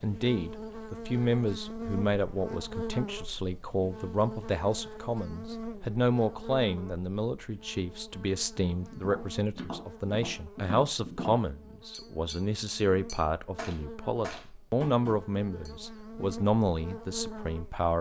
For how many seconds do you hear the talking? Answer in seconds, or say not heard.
18 s.